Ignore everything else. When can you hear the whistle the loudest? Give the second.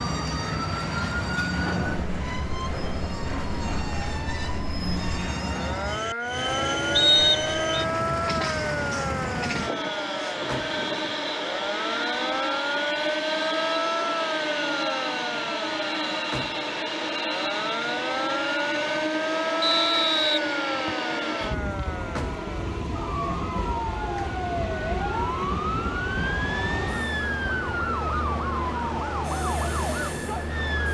7 s.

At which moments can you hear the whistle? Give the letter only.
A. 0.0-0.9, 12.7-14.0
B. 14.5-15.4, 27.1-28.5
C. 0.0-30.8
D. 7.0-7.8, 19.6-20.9
D.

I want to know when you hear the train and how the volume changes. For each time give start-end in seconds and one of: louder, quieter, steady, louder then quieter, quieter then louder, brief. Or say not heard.
0.0-30.8 steady.